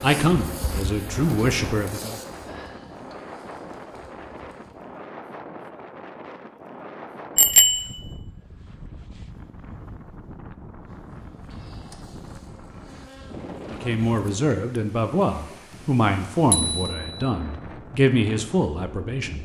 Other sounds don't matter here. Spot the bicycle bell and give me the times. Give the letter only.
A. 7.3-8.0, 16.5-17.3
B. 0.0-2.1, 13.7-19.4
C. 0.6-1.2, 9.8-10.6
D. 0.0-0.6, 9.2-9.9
A.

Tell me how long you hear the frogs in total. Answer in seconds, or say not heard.
not heard.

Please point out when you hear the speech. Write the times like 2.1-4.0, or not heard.
0.0-2.1, 13.7-19.4.